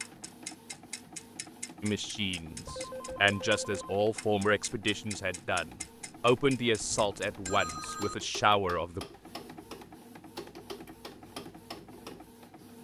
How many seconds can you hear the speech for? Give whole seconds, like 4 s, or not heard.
7 s.